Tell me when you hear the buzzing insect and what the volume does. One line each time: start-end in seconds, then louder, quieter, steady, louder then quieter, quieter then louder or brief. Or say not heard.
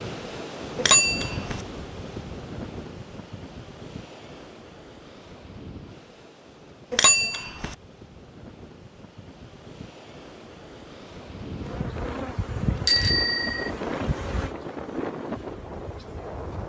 11.6-16.6 quieter.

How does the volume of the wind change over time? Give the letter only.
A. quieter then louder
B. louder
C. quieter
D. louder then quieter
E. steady
A.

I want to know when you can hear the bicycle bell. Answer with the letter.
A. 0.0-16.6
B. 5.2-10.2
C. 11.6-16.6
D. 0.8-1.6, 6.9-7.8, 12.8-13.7
D.